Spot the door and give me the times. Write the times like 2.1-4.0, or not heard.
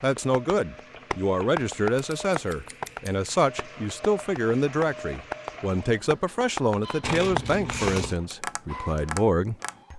not heard.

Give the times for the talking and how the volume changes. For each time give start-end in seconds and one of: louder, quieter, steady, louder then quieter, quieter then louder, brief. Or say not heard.
0.0-9.9 steady.